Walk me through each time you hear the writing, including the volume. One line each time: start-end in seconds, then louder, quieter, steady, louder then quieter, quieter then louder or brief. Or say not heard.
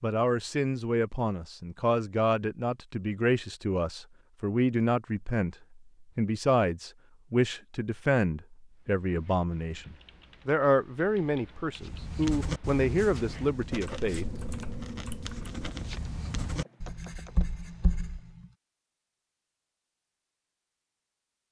11.8-18.5 quieter then louder.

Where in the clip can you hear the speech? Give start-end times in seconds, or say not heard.
0.0-14.2.